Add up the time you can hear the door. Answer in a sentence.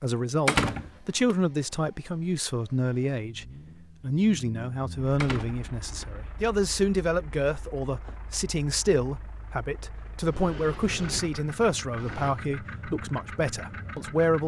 The door can be heard for 4 seconds in total.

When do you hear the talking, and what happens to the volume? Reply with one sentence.
You can hear the talking from 0.0 to 14.4 s, at a steady volume.